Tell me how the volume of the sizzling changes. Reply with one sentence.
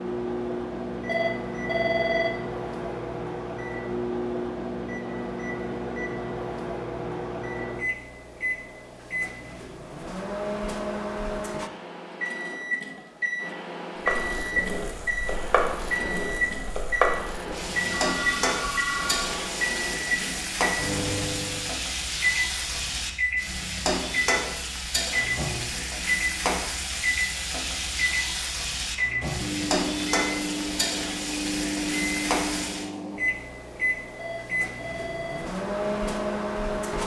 The volume of the sizzling stays about the same.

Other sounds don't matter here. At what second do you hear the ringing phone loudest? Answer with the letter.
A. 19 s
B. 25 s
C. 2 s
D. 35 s
C.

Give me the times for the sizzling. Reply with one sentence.
The sizzling can be heard from 14.1 to 32.9 s.